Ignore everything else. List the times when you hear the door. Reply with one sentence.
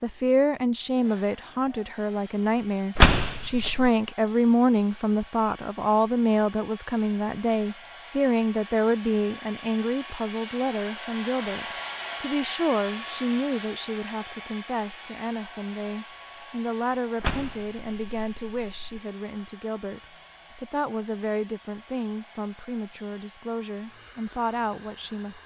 The door can be heard from 3.0 to 3.9 s and from 17.2 to 19.0 s.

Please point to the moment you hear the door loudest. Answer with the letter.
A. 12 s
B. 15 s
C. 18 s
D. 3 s
D.